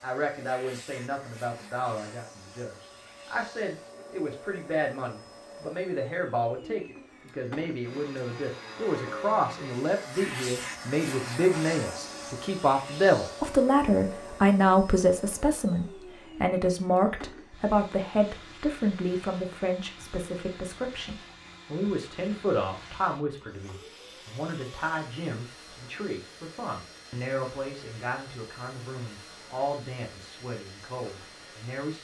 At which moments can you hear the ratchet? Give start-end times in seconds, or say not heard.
not heard.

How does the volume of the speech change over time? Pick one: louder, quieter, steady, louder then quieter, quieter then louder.
louder then quieter.